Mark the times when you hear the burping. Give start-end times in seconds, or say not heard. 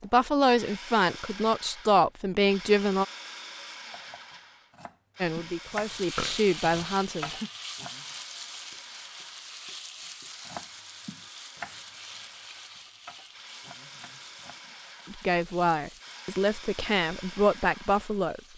6.2-7.5.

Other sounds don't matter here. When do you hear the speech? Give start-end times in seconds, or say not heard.
0.0-3.0, 5.2-7.3, 15.1-18.4.